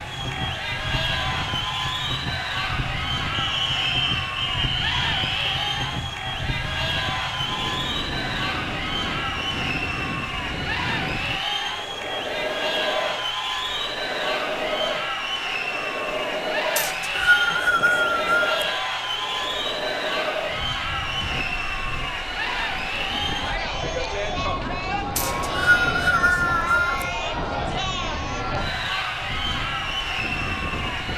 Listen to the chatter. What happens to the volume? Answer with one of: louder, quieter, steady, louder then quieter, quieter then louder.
steady.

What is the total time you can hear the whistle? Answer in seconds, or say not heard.
6 s.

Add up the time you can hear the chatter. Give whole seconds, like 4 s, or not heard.
31 s.